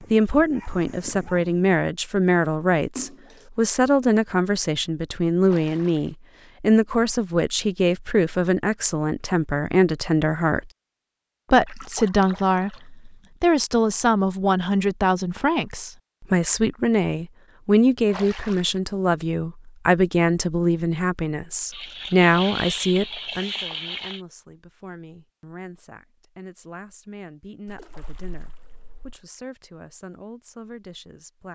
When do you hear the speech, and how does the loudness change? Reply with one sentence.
You can hear the speech from 0.0 to 10.7 s, at a steady volume; and from 11.5 to 31.5 s, getting quieter.